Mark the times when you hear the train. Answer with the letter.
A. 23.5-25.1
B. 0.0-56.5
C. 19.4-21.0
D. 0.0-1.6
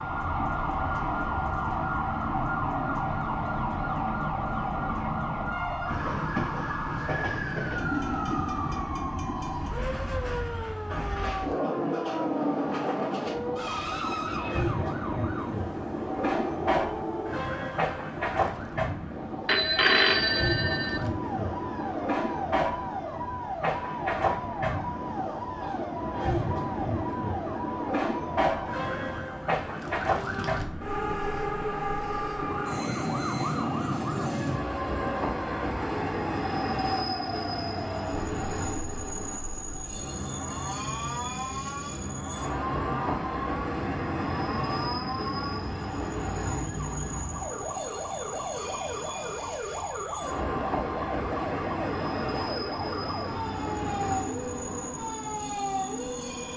B.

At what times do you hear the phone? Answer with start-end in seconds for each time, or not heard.
19.4-21.0.